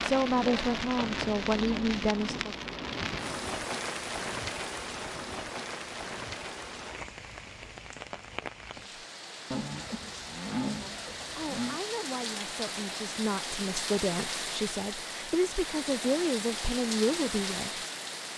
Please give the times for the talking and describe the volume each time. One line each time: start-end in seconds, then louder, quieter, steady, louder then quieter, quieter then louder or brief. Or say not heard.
0.0-2.5 brief
11.3-17.8 louder.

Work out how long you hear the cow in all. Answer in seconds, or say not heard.
2 s.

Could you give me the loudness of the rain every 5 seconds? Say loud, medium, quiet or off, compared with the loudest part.
loud, medium, loud, loud.